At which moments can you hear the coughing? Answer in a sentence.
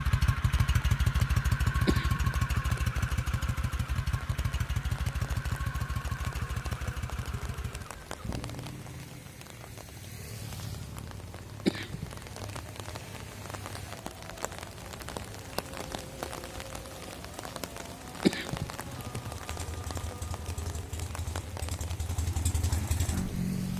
You can hear the coughing from 1.9 to 2.8 s, from 11.4 to 12.6 s and from 18.2 to 19.2 s.